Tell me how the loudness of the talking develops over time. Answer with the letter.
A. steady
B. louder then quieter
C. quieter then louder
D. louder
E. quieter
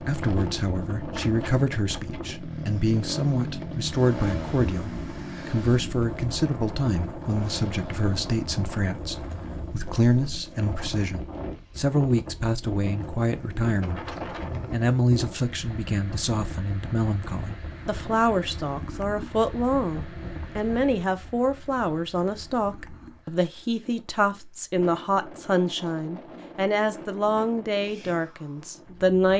A.